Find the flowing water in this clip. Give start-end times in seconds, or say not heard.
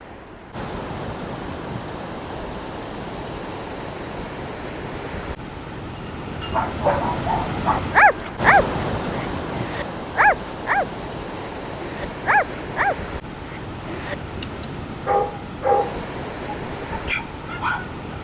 0.0-18.1.